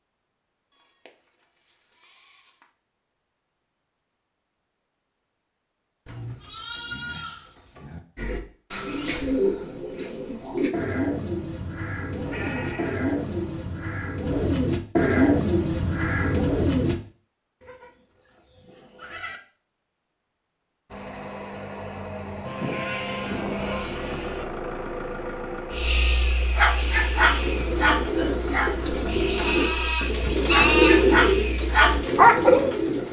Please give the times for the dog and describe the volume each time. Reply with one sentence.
The dog can be heard from 25.7 to 32.8 s, getting quieter then louder.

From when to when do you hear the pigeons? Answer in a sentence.
You can hear the pigeons from 8.2 to 16.9 s and from 26.8 to 33.0 s.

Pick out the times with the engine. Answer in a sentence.
You can hear the engine from 20.9 to 29.9 s.